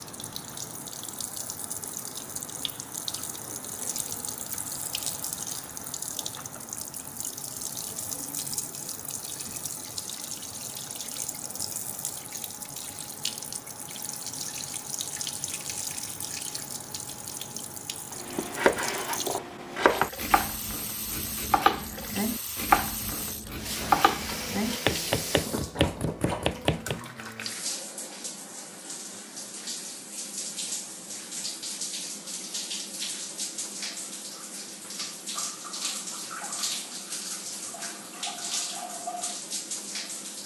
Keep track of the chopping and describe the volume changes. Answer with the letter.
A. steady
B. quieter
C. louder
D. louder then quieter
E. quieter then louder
A.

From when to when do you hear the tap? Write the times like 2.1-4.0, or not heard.
0.0-40.4.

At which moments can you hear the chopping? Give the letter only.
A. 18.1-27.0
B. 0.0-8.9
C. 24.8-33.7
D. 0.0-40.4
A.